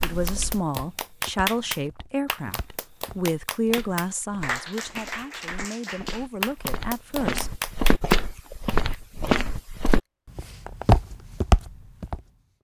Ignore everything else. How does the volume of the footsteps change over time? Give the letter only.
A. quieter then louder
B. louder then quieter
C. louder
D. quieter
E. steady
C.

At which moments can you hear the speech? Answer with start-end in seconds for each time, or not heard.
0.0-7.5.